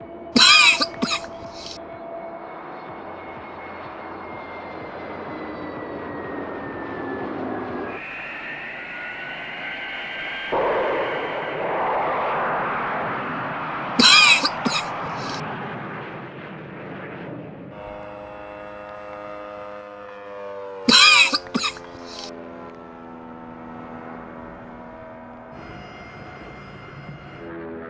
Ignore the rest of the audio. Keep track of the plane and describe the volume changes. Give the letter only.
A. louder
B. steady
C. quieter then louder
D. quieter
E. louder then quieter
E.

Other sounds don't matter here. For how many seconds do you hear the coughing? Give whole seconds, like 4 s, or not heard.
4 s.